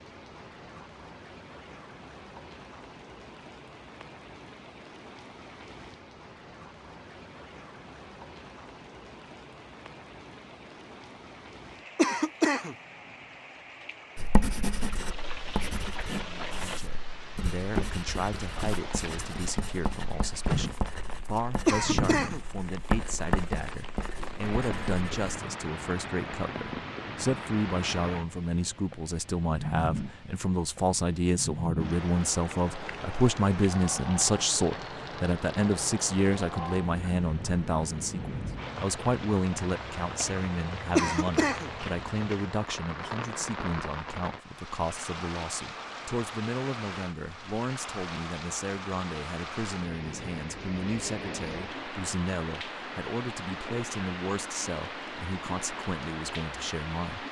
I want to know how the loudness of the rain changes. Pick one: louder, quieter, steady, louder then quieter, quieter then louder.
louder.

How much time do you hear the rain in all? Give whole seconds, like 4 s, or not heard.
57 s.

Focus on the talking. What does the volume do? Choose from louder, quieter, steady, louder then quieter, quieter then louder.
louder then quieter.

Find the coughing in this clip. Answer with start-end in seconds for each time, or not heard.
11.9-12.8, 21.6-22.4, 41.0-41.7.